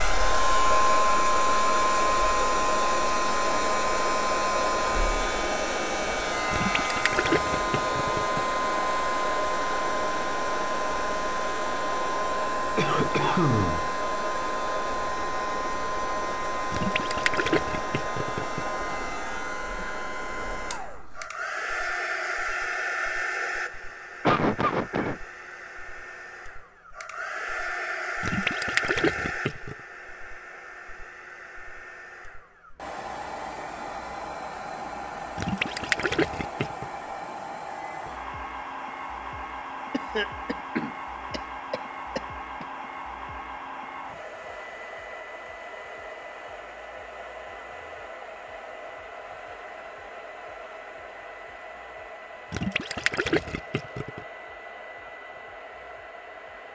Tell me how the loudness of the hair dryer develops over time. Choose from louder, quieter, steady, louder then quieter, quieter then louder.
quieter.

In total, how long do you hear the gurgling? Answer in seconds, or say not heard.
9 s.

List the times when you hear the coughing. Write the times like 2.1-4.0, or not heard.
12.8-13.9, 24.2-25.2, 39.9-42.6.